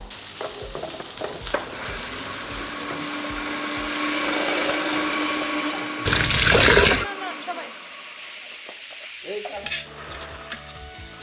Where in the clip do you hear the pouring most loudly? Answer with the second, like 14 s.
7 s.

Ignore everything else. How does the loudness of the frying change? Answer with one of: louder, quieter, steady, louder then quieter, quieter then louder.
steady.